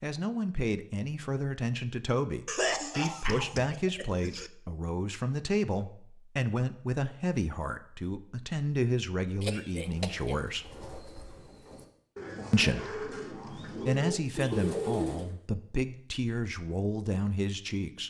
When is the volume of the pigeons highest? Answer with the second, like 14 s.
15 s.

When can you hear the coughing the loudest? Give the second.
3 s.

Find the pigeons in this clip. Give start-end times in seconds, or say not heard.
9.7-15.3.